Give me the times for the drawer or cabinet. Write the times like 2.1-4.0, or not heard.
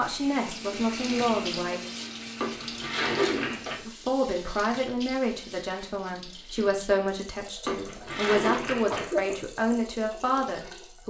2.4-3.9, 7.7-9.1.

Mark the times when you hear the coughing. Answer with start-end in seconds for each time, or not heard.
3.0-3.6, 8.9-9.5.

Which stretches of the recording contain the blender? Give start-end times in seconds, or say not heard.
0.0-3.6.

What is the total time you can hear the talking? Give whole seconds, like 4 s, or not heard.
9 s.